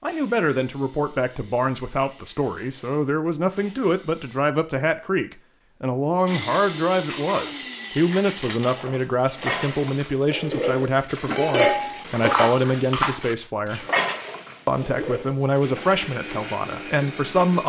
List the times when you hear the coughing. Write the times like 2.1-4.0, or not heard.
not heard.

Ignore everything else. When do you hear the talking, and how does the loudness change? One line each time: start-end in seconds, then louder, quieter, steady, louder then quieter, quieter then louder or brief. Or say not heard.
0.0-13.8 steady
14.7-17.6 brief.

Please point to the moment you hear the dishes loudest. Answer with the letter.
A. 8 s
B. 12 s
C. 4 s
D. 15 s
B.